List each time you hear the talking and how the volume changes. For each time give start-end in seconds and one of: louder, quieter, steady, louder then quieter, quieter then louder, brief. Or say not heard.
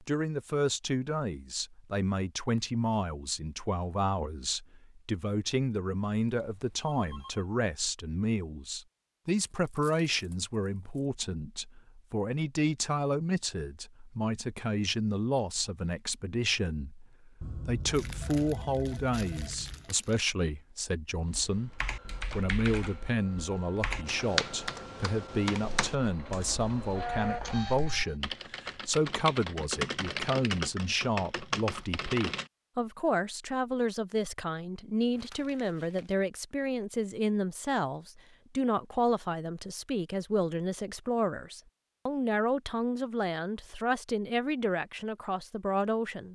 0.0-46.3 steady.